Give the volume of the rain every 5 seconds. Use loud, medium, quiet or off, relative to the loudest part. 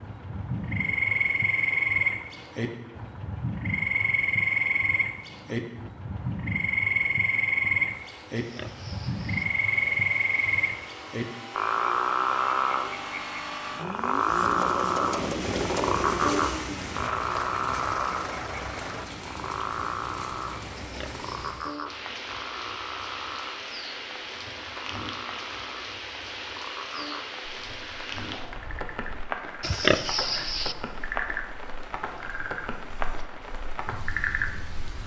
off, off, off, loud, loud, loud, loud.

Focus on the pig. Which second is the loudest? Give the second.
30 s.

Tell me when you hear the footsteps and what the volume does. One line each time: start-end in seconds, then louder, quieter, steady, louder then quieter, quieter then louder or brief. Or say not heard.
not heard.